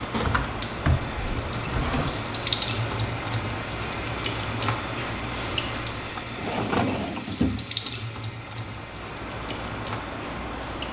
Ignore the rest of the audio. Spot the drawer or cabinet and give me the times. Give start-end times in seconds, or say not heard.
0.1-2.1, 6.0-8.0.